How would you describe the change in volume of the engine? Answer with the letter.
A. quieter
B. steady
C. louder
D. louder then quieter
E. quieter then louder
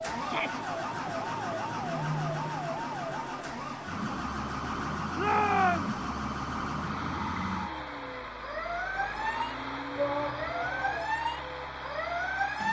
B.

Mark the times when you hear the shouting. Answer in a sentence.
You can hear the shouting from 0.1 to 0.6 s, from 5.2 to 6.0 s and from 9.9 to 11.1 s.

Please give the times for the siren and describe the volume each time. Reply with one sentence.
You can hear the siren from 0.0 to 12.6 s, at a steady volume.